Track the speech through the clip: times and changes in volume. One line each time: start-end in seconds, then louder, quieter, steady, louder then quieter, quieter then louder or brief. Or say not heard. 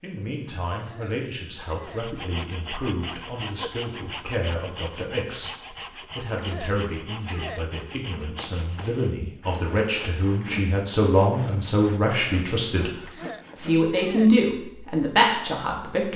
0.0-16.1 louder.